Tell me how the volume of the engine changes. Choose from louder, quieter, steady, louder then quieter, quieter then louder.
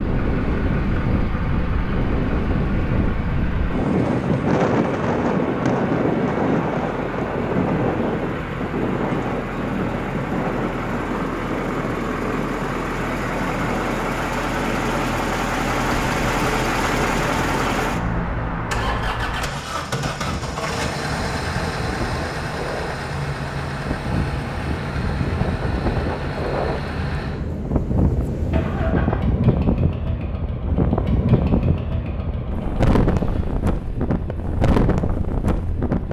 louder then quieter.